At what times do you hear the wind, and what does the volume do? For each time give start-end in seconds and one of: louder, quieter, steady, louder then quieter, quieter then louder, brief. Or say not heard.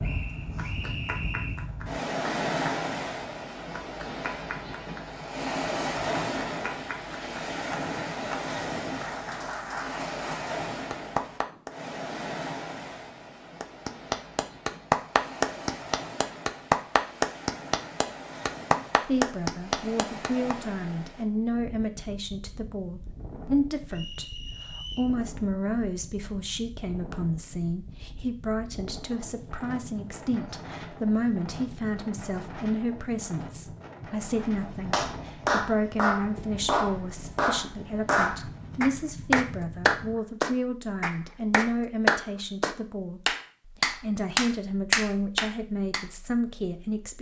0.0-40.2 quieter.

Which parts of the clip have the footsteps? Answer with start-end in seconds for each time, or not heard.
not heard.